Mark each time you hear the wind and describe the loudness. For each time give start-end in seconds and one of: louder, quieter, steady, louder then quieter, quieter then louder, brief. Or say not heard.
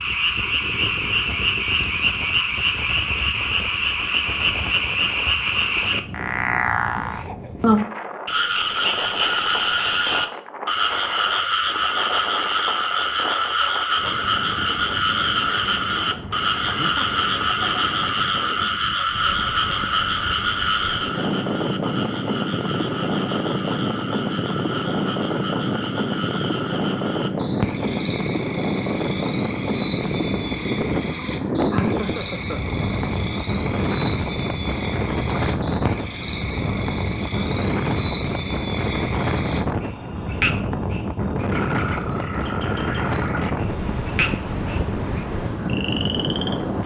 0.0-46.8 louder.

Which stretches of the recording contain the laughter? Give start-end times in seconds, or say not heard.
7.0-7.8, 16.6-17.2, 31.7-32.6.